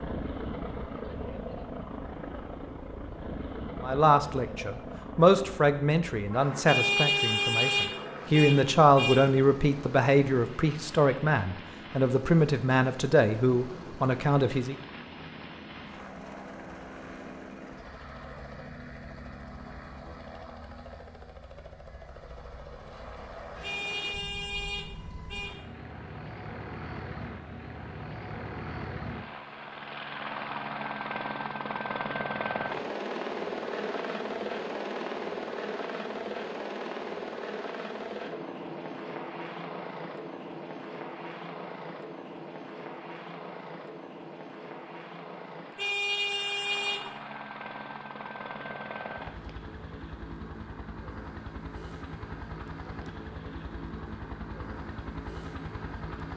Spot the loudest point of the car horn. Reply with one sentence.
The volume of the car horn peaks at 7 seconds.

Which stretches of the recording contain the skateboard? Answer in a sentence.
You can't hear the skateboard here.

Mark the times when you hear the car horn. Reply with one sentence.
The car horn can be heard from 6.7 to 9.2 s, from 23.6 to 25.6 s and from 45.8 to 47.0 s.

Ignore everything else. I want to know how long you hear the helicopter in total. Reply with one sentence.
You can hear the helicopter for 56 seconds altogether.